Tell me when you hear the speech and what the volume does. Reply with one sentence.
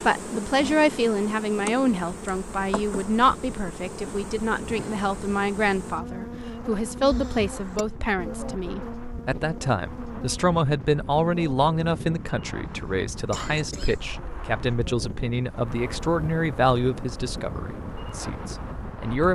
You can hear the speech from 0.0 to 19.2 s, at a steady volume.